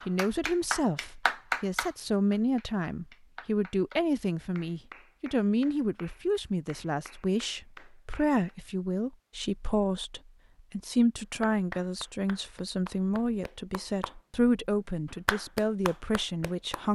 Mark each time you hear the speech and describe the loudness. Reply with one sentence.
You can hear the speech from 0.1 to 16.9 s, at a steady volume.